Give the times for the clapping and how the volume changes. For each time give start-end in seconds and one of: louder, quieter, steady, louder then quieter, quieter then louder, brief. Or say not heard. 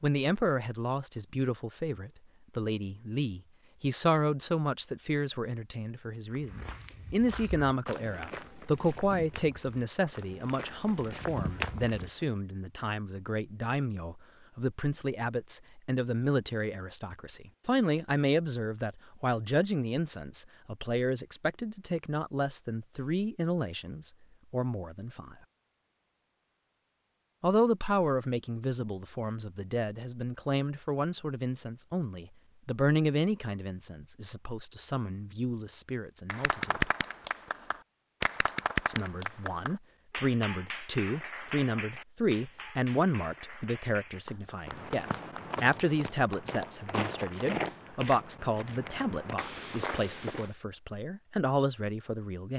36.2-47.8 quieter.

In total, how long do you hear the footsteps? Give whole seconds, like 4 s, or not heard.
12 s.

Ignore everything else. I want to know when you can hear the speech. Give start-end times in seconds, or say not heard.
0.0-25.4, 27.4-36.9, 38.9-52.5.